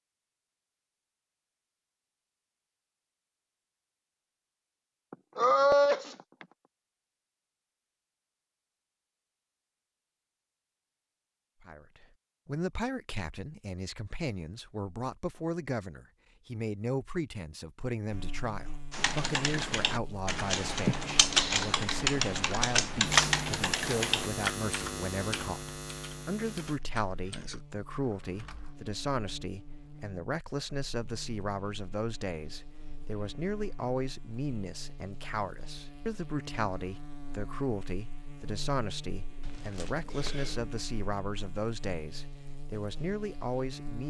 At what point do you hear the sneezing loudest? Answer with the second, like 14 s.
6 s.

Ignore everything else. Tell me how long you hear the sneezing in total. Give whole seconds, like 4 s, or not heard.
3 s.